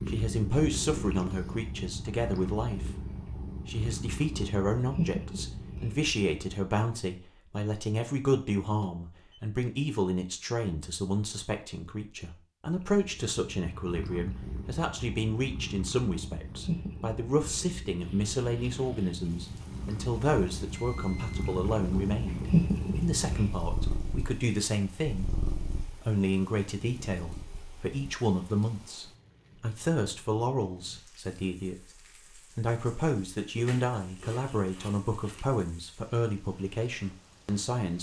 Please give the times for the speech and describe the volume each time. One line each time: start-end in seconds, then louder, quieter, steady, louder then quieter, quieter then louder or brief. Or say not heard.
0.0-37.9 steady.